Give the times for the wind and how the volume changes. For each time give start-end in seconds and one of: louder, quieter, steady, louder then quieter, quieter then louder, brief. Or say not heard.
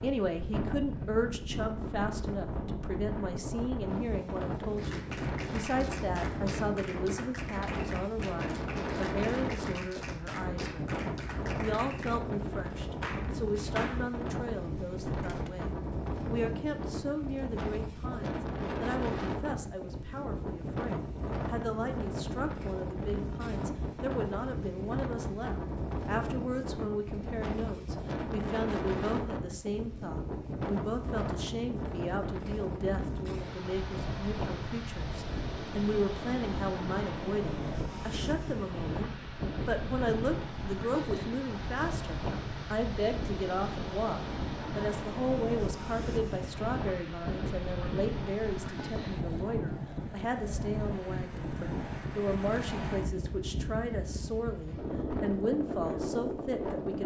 0.0-57.0 steady.